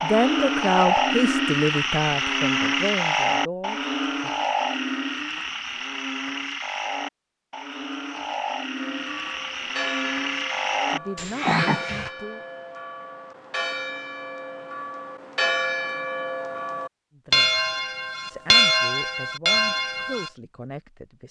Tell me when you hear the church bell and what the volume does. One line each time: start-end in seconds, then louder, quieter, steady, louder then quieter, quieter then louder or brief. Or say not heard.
8.8-20.3 louder.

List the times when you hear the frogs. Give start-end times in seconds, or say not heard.
0.0-12.1.